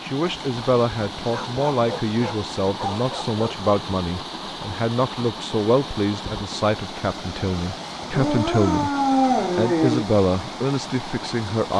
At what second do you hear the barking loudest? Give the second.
9 s.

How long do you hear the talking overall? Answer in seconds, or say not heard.
11 s.